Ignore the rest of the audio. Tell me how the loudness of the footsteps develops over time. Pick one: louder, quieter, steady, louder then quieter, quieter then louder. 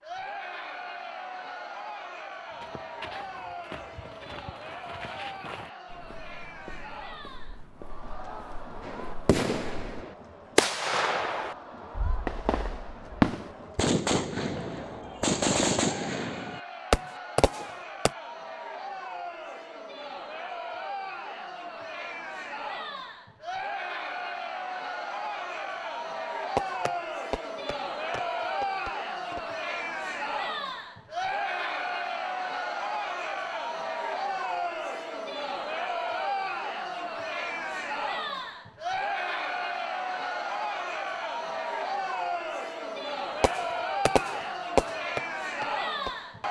quieter.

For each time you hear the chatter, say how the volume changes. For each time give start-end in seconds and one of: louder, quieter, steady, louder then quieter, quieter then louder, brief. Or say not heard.
0.0-46.4 louder.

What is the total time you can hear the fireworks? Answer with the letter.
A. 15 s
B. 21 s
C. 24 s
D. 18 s
A.